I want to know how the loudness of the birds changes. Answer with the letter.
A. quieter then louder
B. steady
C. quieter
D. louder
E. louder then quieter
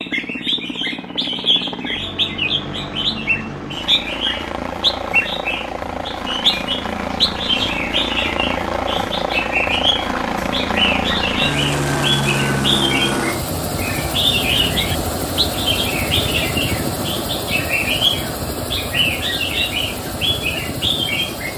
B.